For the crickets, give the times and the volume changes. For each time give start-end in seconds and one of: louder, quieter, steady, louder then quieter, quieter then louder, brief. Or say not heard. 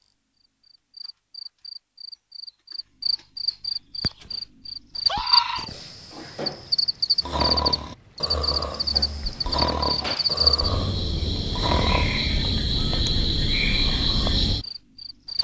0.0-15.4 louder.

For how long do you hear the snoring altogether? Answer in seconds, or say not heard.
7 s.